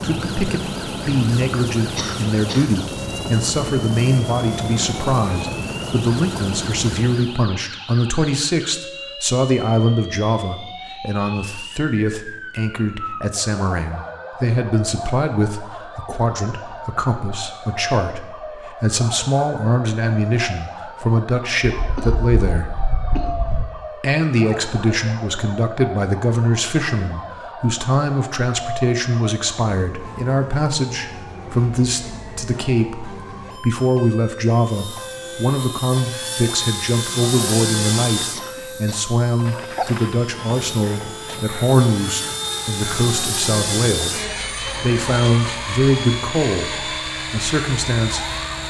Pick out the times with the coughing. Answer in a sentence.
You can hear the coughing from 1.9 to 2.6 s, from 21.8 to 23.6 s and from 38.3 to 39.0 s.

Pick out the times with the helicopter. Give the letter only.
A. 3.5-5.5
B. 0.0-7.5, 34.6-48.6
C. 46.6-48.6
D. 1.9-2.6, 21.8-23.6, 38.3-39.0
B.